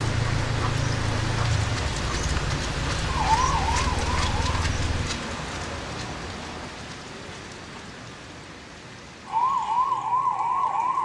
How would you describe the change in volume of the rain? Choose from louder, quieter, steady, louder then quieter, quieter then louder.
quieter.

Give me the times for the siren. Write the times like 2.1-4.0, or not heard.
3.0-4.5, 9.2-11.0.